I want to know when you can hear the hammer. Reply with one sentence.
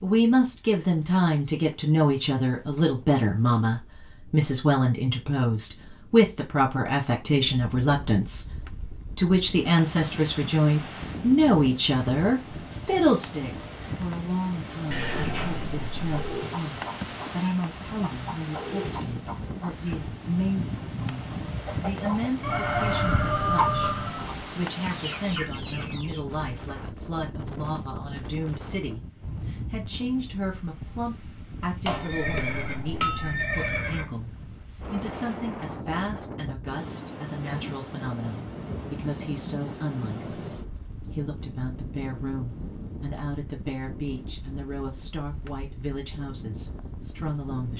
The hammer can be heard from 31.9 to 33.4 s.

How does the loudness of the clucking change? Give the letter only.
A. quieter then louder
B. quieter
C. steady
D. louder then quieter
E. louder
D.